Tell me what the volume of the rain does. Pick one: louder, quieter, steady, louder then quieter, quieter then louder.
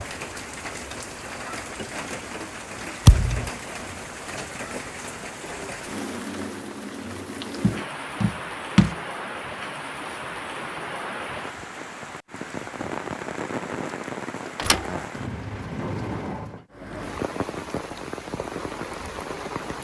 steady.